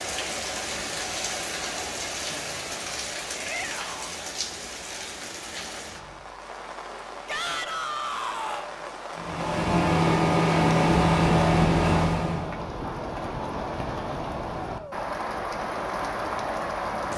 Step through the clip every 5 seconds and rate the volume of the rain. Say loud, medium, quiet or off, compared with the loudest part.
loud, medium, loud, loud.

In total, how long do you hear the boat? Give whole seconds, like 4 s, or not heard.
3 s.